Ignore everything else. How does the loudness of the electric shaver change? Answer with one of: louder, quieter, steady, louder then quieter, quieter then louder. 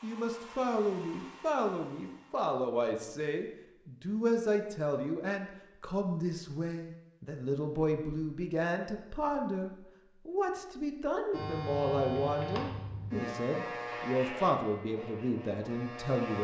quieter.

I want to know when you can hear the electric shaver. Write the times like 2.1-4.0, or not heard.
11.3-16.3.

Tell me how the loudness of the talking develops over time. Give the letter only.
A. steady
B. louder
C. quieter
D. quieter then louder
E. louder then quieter
A.